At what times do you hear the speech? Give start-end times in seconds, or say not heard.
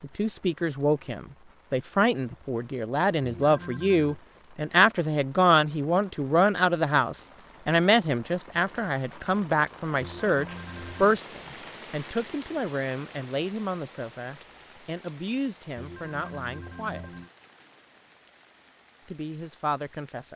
0.0-17.2, 19.1-20.3.